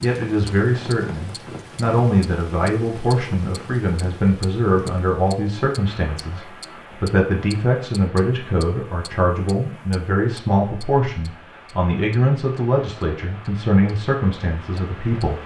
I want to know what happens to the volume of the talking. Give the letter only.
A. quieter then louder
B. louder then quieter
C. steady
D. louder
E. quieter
C.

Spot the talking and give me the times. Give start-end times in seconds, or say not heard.
0.0-15.4.